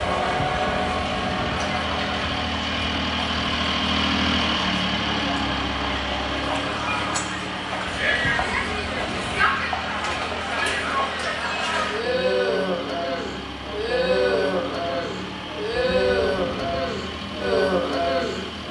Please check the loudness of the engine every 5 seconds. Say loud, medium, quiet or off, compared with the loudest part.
loud, loud, medium, medium.